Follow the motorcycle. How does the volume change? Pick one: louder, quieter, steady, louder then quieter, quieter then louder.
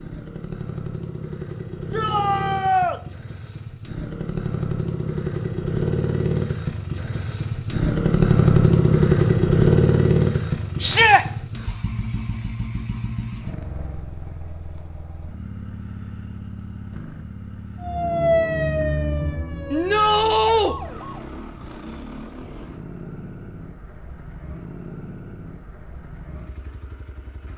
louder then quieter.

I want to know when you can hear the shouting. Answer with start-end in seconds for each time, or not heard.
1.9-3.0, 10.8-11.2, 19.7-20.8.